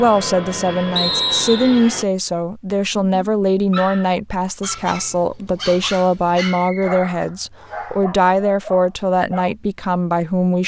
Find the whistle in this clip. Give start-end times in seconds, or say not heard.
0.9-1.8, 6.5-8.0.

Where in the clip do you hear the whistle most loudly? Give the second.
1 s.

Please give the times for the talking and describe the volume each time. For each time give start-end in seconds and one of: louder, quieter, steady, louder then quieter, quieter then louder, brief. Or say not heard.
0.0-10.6 steady.